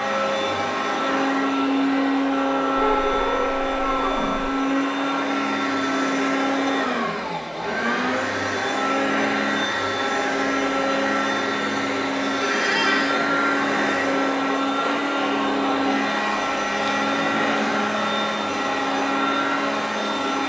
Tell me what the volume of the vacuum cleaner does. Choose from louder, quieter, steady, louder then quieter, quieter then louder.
steady.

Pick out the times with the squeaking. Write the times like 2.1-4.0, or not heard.
2.8-4.5, 12.4-13.2.